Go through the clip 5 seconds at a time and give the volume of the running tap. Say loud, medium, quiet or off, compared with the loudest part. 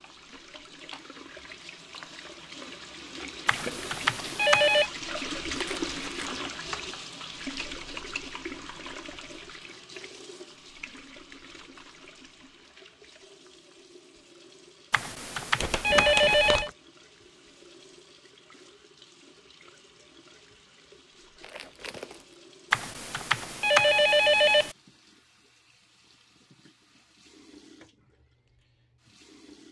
medium, loud, quiet, quiet, quiet, quiet.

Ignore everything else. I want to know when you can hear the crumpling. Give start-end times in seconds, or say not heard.
5.5-6.4, 15.6-16.7, 21.4-22.4.